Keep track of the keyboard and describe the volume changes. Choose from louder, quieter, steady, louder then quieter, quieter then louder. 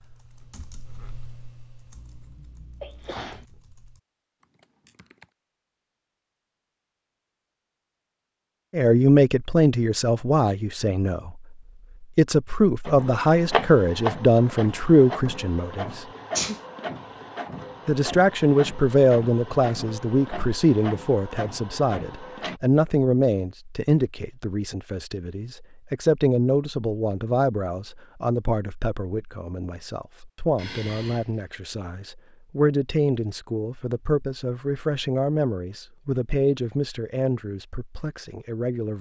quieter.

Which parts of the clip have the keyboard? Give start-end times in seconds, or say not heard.
0.0-5.3.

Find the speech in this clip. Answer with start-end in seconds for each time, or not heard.
8.7-11.4, 12.0-16.1, 17.9-38.9.